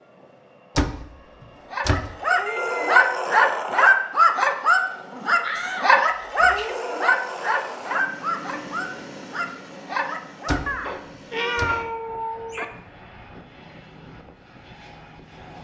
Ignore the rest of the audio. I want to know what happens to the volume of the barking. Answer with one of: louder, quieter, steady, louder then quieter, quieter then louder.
quieter.